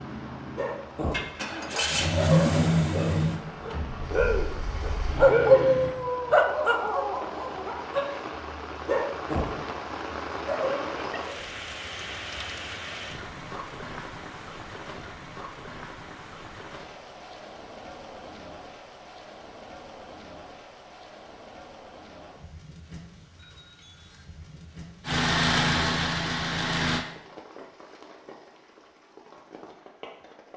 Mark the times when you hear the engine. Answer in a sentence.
You can hear the engine from 0.0 to 6.0 s and from 25.1 to 27.1 s.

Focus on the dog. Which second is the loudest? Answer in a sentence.
The loudest moment of the dog is at 5 seconds.